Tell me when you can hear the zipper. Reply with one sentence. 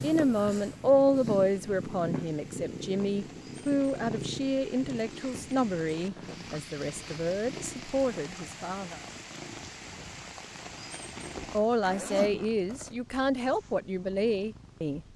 You can hear the zipper from 11.8 to 12.9 s.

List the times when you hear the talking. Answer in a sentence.
The talking can be heard from 0.0 to 9.0 s and from 11.5 to 15.0 s.